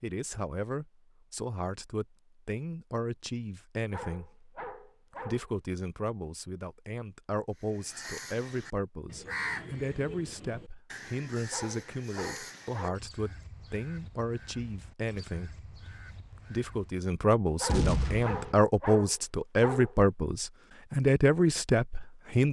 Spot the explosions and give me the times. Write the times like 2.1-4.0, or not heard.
17.6-18.6.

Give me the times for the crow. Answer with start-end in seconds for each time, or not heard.
7.5-17.1.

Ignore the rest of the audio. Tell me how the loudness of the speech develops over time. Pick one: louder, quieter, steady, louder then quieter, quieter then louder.
louder.